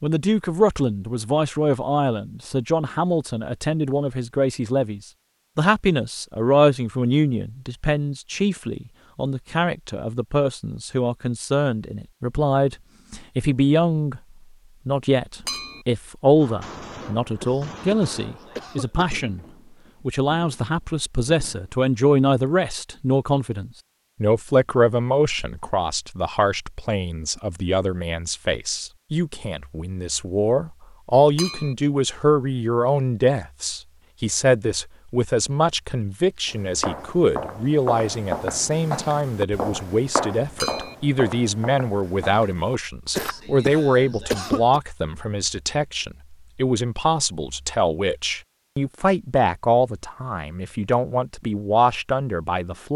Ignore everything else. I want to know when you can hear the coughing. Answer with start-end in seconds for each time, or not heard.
17.4-19.1, 43.1-44.8.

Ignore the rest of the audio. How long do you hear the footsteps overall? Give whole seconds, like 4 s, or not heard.
7 s.